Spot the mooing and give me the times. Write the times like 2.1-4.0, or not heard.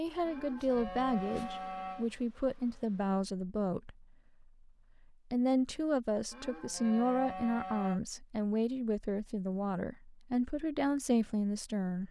0.2-2.0, 6.3-8.0.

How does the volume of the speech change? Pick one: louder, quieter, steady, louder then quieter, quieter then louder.
steady.